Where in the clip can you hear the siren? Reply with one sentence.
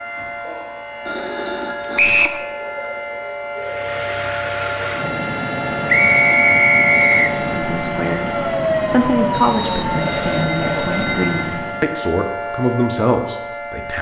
You can hear the siren from 0.0 to 13.9 s.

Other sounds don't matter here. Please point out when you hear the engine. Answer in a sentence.
You can hear the engine from 3.5 to 11.9 s.